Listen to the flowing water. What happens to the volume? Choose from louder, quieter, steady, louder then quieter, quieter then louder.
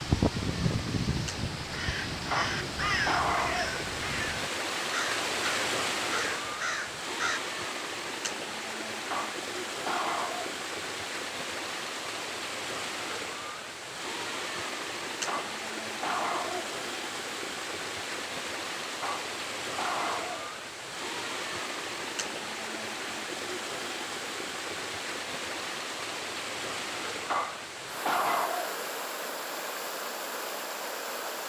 steady.